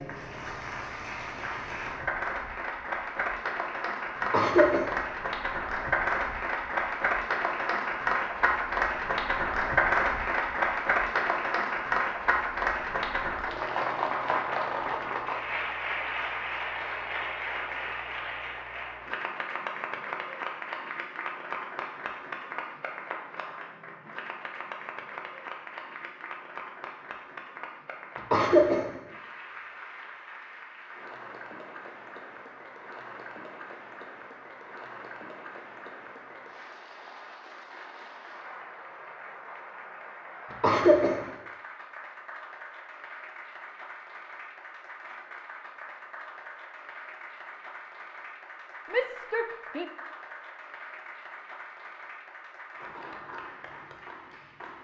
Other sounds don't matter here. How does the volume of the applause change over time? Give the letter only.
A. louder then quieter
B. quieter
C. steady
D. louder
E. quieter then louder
B.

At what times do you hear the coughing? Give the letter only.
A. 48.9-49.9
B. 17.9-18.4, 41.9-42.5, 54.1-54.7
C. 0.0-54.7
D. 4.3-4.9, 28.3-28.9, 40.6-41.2
D.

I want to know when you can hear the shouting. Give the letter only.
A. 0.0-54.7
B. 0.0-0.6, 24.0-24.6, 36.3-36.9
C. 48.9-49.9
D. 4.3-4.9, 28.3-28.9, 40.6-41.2
C.